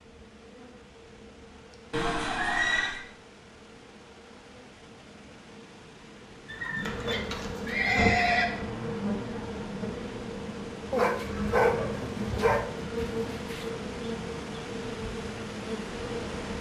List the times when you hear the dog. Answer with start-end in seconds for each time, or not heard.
10.9-13.7.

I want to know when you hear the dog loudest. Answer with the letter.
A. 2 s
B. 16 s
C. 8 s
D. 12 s
D.